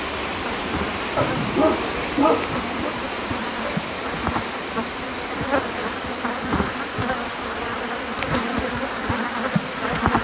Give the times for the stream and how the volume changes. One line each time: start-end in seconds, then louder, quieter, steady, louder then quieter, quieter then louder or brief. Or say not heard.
0.0-10.1 quieter.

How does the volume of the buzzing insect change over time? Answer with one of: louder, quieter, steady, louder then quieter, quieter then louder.
louder.